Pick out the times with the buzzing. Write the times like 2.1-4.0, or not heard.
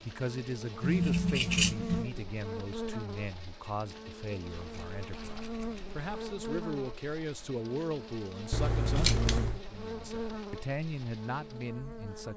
0.0-12.3.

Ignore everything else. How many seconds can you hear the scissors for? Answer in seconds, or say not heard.
4 s.